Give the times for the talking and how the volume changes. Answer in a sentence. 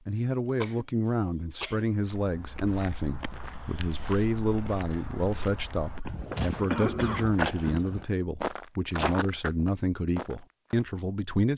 The talking can be heard from 0.1 to 11.5 s, at a steady volume.